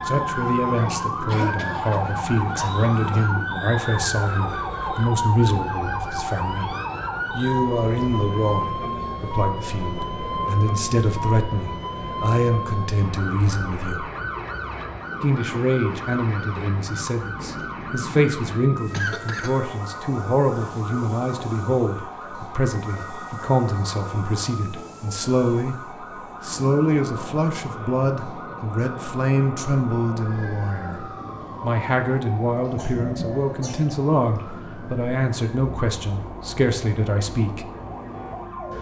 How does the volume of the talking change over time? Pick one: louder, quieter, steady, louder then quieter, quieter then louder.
steady.